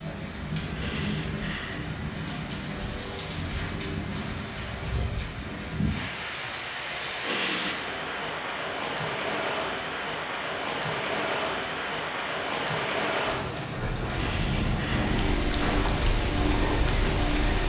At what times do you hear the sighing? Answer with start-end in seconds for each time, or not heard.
0.8-1.9, 7.2-7.8, 14.1-15.9.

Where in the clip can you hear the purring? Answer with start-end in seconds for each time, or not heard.
15.1-17.6.